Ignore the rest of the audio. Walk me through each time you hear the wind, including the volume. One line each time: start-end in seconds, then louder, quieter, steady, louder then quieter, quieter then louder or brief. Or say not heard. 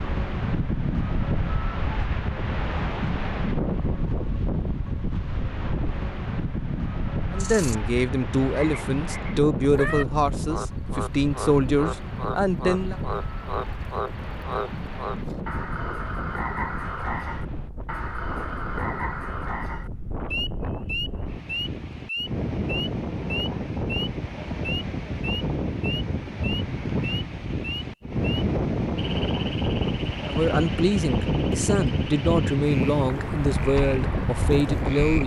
0.0-35.2 quieter then louder.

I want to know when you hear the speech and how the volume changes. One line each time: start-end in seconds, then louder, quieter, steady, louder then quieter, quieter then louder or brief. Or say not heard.
7.3-12.9 steady
30.2-35.2 steady.